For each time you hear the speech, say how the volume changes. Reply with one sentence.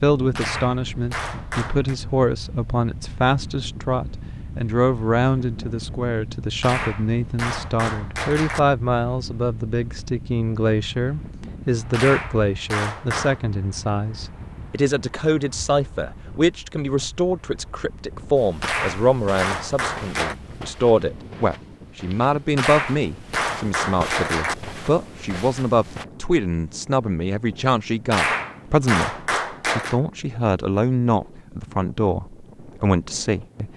The speech can be heard from 0.0 to 33.7 s, at a steady volume.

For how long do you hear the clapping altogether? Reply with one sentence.
The clapping can be heard for 11 seconds in total.